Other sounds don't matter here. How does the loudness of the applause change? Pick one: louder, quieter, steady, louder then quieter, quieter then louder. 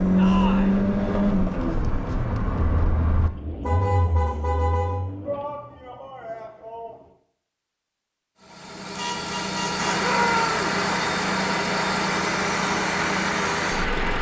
steady.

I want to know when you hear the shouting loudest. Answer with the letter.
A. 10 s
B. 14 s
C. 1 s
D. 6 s
A.